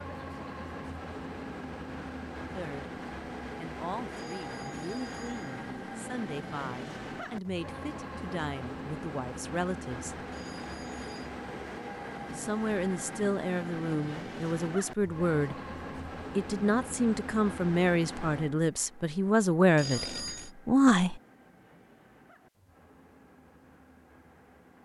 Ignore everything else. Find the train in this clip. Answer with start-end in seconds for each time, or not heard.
0.0-24.8.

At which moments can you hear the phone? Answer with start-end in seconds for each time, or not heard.
4.1-5.5, 10.3-11.3, 19.8-20.5.